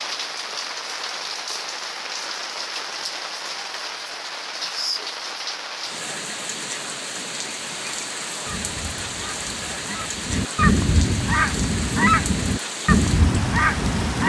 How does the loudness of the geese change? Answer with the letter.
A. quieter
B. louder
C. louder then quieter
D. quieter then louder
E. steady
B.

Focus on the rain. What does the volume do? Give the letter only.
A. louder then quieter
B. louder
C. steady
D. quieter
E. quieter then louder
C.